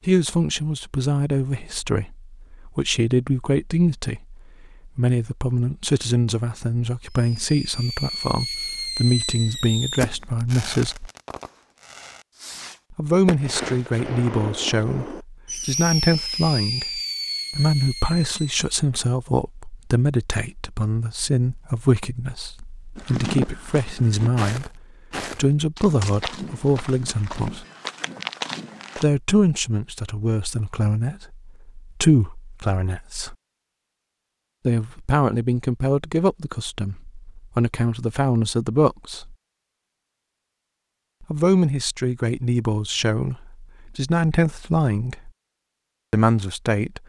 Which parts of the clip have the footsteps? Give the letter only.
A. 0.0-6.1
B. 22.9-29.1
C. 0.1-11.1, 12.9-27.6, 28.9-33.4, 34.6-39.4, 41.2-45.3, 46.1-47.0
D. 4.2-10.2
B.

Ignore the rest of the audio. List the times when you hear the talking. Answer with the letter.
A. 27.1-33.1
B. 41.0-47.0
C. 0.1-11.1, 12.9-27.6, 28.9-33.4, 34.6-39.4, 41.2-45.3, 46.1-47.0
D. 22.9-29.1
C.